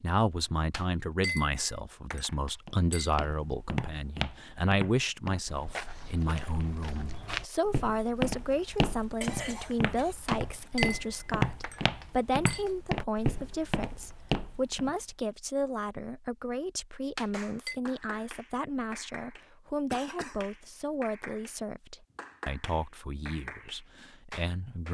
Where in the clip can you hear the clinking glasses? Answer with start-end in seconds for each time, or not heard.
0.7-3.1, 10.2-12.8, 17.1-17.8.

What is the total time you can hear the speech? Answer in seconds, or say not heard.
25 s.